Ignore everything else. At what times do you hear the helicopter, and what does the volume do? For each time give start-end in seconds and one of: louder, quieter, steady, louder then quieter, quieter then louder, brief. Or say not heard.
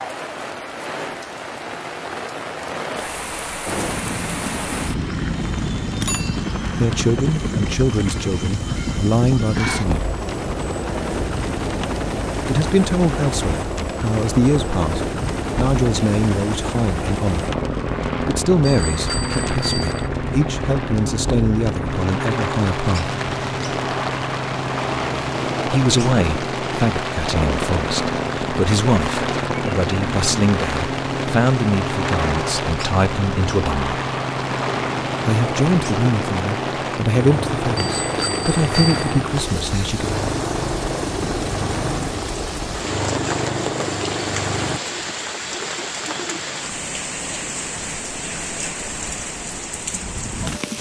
3.6-44.8 steady.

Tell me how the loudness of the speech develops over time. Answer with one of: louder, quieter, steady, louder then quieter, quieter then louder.
steady.